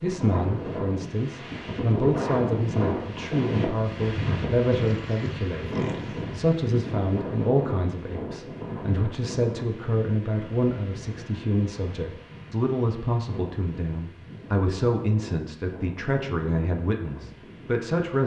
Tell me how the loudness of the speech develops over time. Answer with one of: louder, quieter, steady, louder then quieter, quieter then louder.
steady.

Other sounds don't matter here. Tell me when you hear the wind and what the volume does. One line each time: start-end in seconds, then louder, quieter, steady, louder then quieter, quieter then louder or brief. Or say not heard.
0.0-18.2 quieter.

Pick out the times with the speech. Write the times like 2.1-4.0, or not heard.
0.0-18.2.